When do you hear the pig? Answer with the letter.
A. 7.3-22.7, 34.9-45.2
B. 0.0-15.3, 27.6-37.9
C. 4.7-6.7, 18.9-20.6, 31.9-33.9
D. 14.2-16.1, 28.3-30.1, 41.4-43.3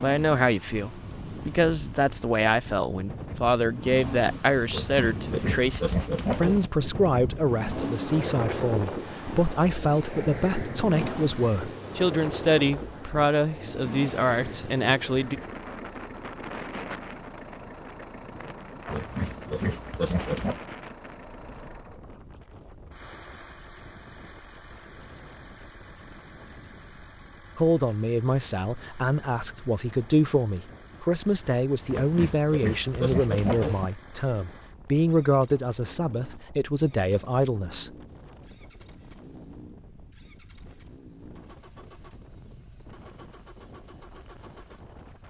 C.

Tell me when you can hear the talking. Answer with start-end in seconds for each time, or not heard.
0.0-15.3, 27.6-37.9.